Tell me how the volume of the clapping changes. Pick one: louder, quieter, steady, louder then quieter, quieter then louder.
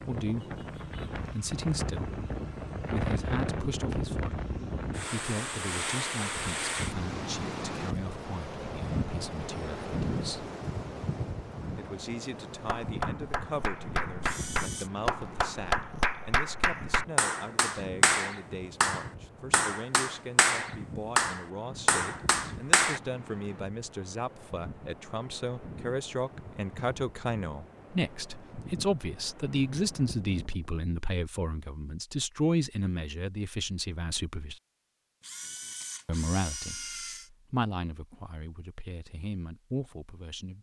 louder.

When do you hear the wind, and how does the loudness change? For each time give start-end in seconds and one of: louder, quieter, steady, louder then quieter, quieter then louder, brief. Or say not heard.
0.0-30.9 quieter.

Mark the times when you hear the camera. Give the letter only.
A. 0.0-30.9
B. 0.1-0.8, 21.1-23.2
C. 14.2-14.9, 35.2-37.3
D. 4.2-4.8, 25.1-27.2
C.